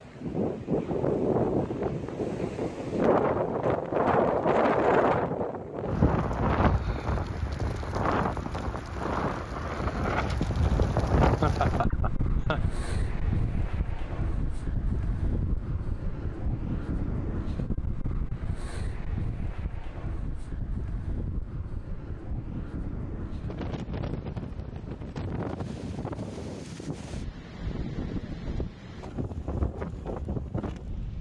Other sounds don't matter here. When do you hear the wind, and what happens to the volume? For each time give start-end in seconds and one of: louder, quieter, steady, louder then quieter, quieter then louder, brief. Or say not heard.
0.0-31.1 quieter.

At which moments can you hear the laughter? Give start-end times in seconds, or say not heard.
11.4-12.7.